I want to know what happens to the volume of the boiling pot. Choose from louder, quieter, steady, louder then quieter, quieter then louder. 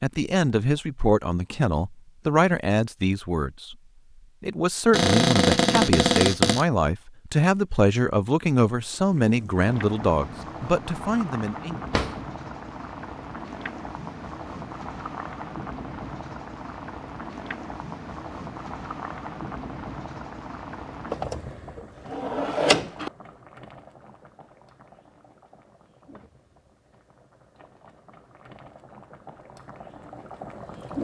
quieter.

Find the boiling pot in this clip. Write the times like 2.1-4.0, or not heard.
8.9-30.9.